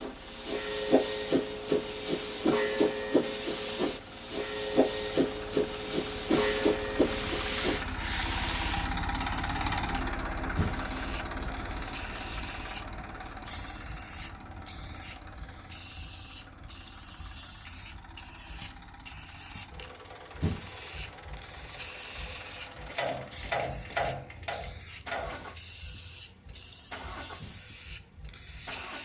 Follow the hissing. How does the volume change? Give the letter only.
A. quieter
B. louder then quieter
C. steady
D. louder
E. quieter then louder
A.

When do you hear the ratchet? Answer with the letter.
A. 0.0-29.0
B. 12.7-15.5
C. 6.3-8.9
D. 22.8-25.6
D.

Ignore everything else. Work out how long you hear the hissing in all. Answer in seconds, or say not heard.
29 s.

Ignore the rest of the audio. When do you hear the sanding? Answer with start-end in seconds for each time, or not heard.
6.3-8.9.